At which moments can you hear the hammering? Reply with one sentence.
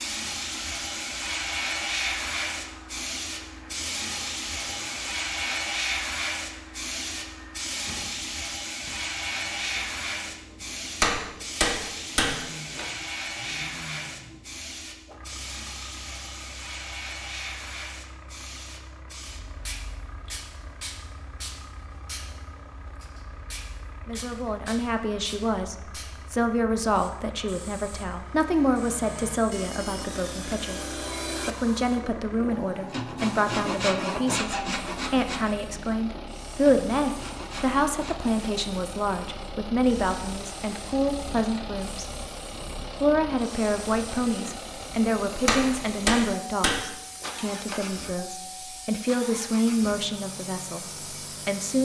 You can hear the hammering from 11.0 to 12.8 s and from 45.5 to 47.8 s.